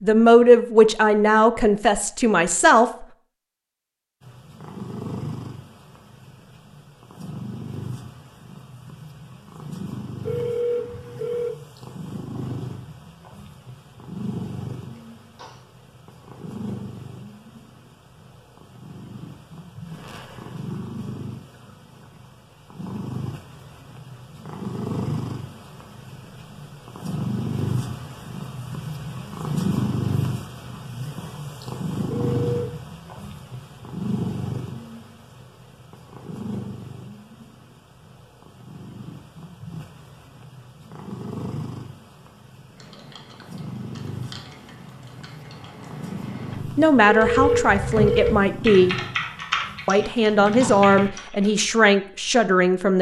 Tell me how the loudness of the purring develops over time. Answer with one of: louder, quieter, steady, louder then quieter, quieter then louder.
louder then quieter.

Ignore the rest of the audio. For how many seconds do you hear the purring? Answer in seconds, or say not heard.
47 s.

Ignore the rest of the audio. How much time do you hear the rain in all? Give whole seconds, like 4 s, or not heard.
not heard.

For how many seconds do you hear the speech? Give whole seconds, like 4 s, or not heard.
8 s.